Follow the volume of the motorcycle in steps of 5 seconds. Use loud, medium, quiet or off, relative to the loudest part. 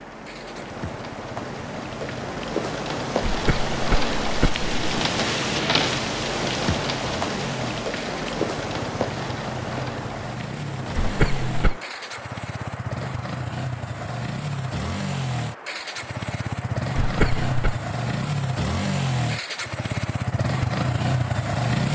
quiet, medium, medium, loud, loud.